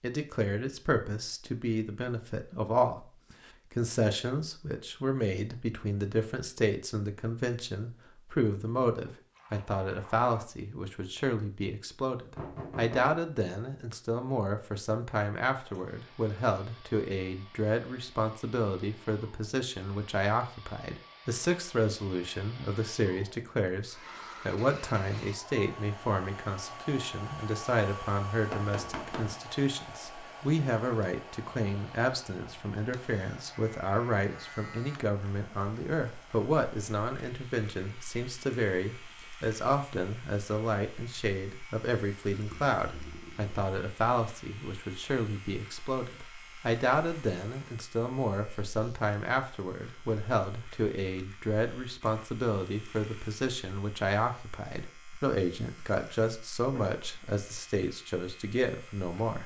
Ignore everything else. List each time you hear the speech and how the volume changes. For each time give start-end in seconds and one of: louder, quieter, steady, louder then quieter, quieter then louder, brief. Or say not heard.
0.0-59.4 steady.